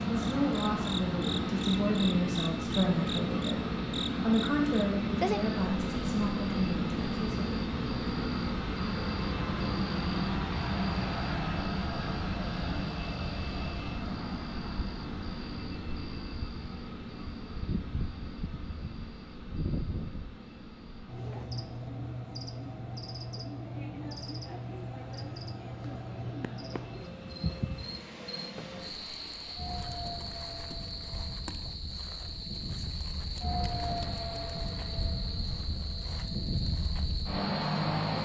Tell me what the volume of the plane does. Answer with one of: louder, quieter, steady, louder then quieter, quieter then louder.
quieter then louder.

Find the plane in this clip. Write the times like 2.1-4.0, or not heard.
0.0-38.2.